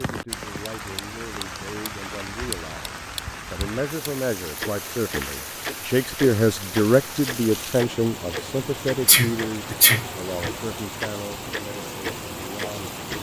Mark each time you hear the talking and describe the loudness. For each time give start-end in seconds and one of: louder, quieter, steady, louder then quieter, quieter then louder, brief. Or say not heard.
0.0-13.1 louder then quieter.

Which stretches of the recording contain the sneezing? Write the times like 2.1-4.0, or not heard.
9.1-10.5.